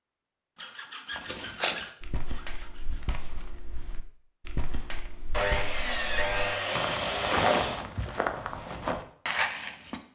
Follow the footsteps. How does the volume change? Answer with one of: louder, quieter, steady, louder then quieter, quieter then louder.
quieter then louder.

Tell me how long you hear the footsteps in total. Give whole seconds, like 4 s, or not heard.
9 s.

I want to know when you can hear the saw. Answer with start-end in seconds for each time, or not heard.
0.6-3.0, 5.3-7.8.